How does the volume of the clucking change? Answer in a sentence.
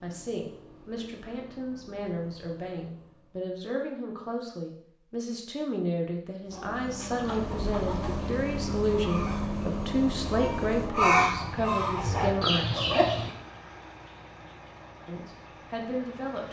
The loudness of the clucking goes up.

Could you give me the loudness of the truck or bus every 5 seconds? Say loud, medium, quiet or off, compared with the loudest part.
quiet, loud, medium, quiet.